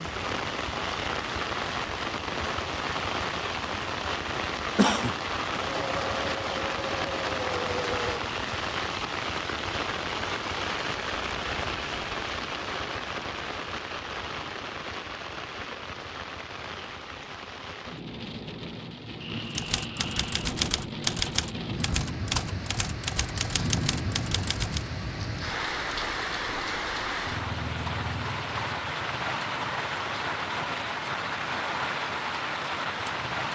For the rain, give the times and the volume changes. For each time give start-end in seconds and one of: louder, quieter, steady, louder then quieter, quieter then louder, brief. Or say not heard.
0.0-33.5 quieter then louder.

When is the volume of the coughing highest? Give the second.
5 s.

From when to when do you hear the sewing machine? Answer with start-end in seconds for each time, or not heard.
5.5-8.3.